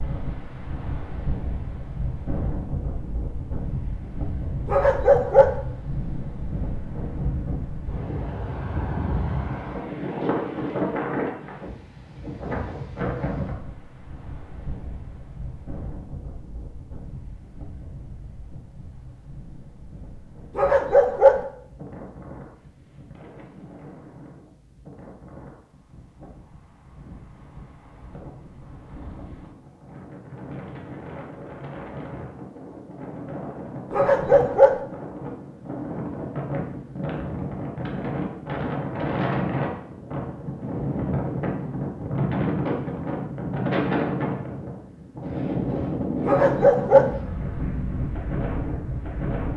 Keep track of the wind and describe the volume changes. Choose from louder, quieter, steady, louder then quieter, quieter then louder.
quieter then louder.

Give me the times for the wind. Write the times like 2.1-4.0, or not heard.
0.0-49.5.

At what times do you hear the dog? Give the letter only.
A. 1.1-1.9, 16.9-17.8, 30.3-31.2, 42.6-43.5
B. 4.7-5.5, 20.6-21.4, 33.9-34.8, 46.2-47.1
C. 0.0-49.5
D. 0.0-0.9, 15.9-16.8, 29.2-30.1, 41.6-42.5
B.